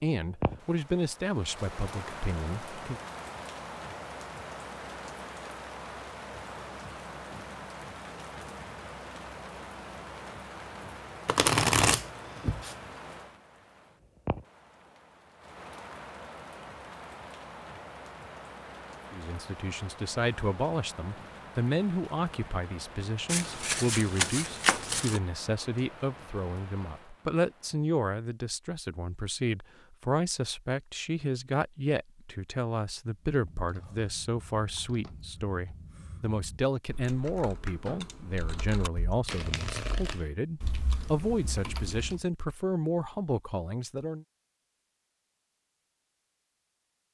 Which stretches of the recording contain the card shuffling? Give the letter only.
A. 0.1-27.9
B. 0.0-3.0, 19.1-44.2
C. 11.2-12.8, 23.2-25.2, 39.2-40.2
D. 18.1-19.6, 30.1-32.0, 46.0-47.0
C.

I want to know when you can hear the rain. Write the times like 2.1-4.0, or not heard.
0.1-27.9.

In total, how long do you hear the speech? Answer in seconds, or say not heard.
28 s.